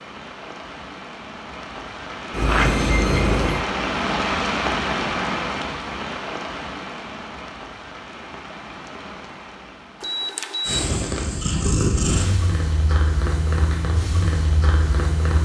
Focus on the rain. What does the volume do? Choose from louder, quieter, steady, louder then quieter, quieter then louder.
louder then quieter.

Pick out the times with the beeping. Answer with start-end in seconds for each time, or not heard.
2.3-3.6, 10.0-10.9.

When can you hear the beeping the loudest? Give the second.
3 s.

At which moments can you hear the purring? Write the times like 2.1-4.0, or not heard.
10.6-15.4.